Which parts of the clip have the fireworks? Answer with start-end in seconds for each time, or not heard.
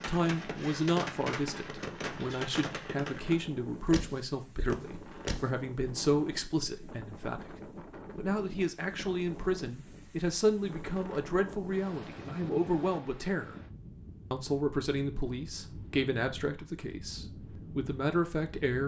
0.0-5.5.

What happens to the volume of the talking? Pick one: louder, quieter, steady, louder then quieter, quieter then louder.
steady.